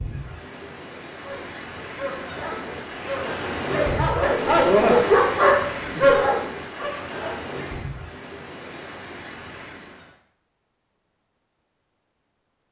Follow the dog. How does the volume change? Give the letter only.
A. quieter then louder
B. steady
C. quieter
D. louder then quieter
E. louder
E.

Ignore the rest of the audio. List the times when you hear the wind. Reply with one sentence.
You can hear the wind from 0.0 to 10.2 s.